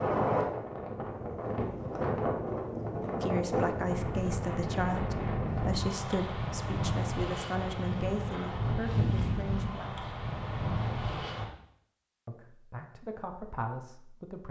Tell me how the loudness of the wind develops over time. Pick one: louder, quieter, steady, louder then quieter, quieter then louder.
steady.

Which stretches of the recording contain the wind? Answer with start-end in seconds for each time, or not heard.
0.0-11.4.